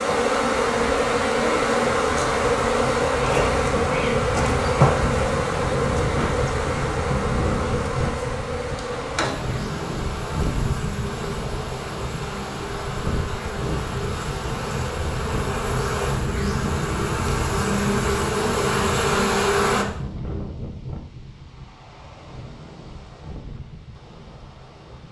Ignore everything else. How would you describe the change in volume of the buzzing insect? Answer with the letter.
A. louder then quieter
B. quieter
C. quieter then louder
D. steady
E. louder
C.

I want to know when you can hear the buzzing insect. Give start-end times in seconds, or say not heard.
0.0-19.9.